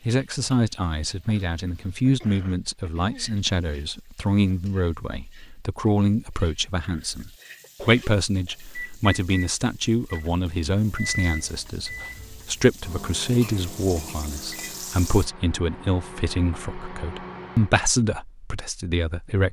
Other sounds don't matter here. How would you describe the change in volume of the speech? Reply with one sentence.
The loudness of the speech stays about the same.